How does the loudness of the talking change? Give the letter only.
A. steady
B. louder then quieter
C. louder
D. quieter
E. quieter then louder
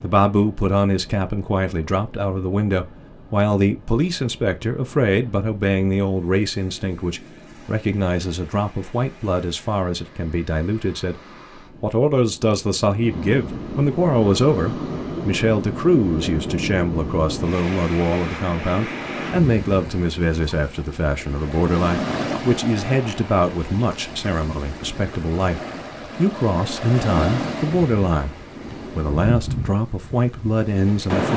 A.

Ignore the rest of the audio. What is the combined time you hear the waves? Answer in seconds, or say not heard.
31 s.